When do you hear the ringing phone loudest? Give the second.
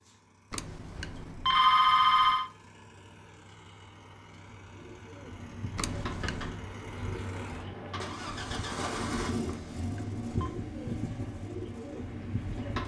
2 s.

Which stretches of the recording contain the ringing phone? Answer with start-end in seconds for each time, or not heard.
0.5-2.5, 5.8-6.6, 9.4-10.5.